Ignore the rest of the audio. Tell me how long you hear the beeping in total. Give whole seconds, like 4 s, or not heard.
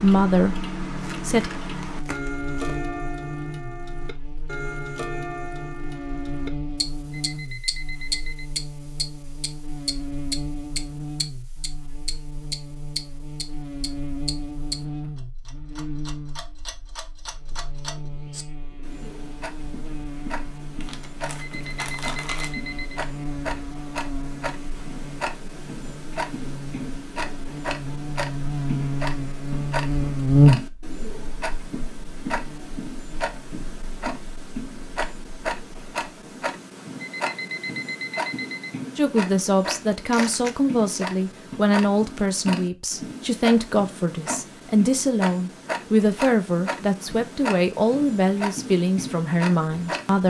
5 s.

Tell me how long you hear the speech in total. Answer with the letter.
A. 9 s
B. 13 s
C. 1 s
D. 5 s
B.